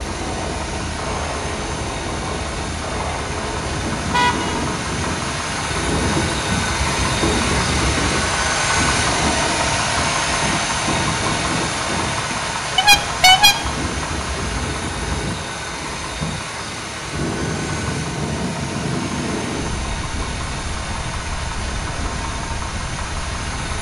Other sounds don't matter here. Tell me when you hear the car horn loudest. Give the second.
13 s.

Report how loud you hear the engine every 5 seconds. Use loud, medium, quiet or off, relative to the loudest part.
medium, loud, loud, medium, medium.